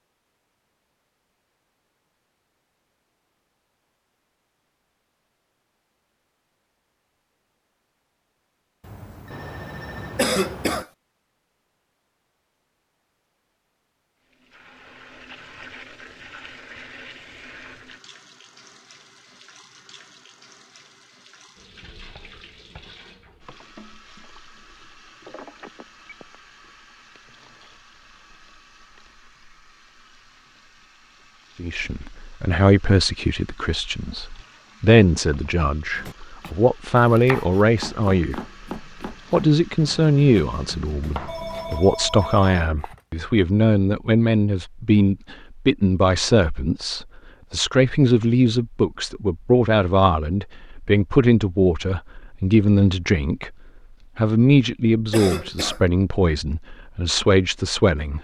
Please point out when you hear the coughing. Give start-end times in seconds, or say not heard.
10.2-10.8, 55.1-55.8.